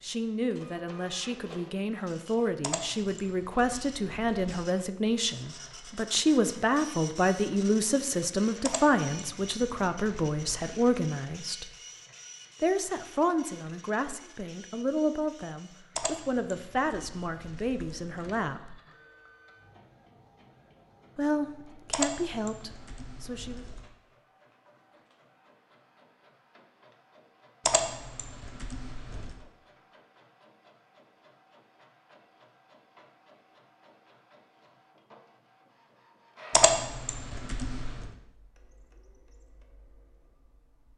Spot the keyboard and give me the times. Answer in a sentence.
You can hear the keyboard from 2.6 to 4.5 s, from 8.7 to 10.9 s, from 15.9 to 18.6 s, from 21.9 to 23.9 s, from 27.6 to 29.4 s and from 36.5 to 38.1 s.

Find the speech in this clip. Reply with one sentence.
You can hear the speech from 0.0 to 11.7 s, from 12.6 to 18.8 s and from 21.1 to 23.6 s.